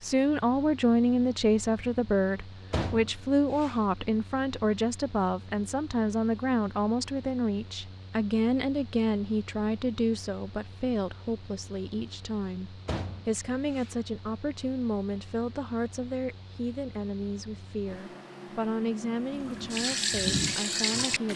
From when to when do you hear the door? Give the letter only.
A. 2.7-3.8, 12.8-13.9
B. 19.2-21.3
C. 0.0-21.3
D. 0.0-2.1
A.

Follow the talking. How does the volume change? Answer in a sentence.
The loudness of the talking goes down.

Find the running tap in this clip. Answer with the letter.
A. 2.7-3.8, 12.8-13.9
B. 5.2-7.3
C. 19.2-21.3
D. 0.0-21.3
C.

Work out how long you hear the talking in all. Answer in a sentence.
The talking can be heard for 21 seconds in total.